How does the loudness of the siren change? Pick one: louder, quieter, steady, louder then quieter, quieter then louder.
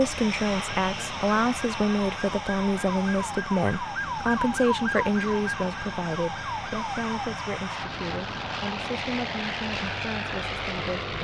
louder then quieter.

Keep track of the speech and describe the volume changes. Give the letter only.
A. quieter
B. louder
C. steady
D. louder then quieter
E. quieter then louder
A.